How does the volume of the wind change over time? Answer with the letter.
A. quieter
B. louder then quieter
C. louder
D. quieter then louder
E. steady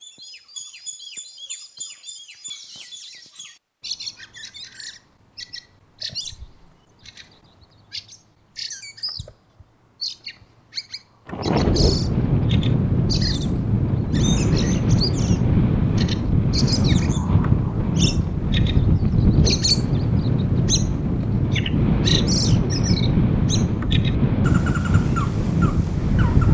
E.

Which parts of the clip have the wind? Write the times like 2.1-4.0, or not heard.
11.3-26.4.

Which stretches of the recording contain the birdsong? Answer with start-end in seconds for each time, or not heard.
0.0-26.4.